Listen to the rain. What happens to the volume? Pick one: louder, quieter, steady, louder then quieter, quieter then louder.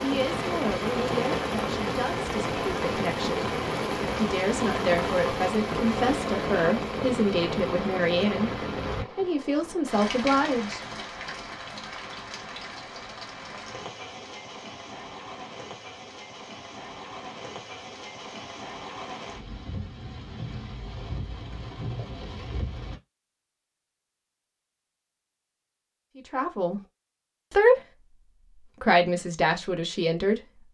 quieter.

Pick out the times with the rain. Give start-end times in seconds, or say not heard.
0.0-23.0.